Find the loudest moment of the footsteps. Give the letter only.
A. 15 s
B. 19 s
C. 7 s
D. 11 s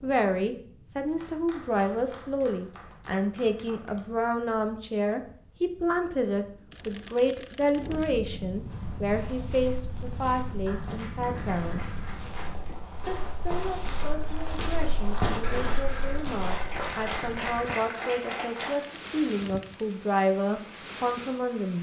A.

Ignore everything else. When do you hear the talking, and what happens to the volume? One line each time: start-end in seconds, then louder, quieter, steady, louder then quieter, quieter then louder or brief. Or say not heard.
0.0-11.8 steady
13.1-21.7 louder.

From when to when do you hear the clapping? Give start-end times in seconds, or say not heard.
1.1-4.0, 9.9-12.6, 16.2-18.8.